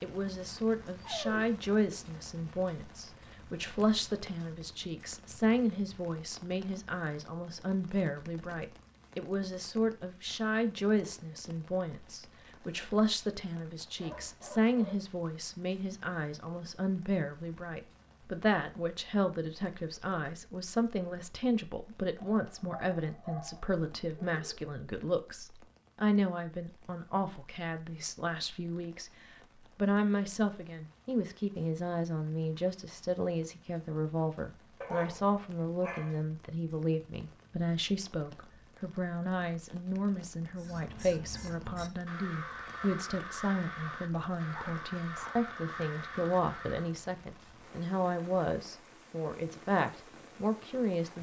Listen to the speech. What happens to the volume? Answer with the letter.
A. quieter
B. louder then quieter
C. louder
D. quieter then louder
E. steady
E.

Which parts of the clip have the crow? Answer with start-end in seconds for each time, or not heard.
40.5-47.0.